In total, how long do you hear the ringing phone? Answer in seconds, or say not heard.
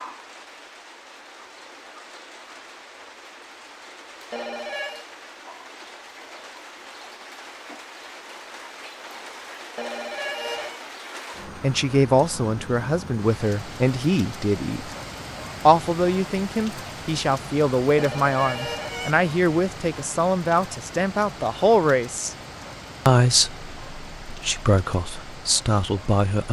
3 s.